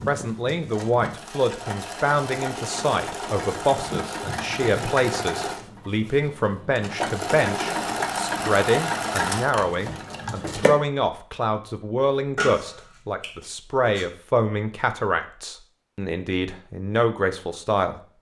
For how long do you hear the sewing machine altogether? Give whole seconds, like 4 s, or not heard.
11 s.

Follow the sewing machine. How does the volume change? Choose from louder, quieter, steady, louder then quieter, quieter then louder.
louder.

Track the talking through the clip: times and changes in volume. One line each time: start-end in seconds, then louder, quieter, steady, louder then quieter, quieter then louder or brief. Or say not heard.
0.1-17.9 steady.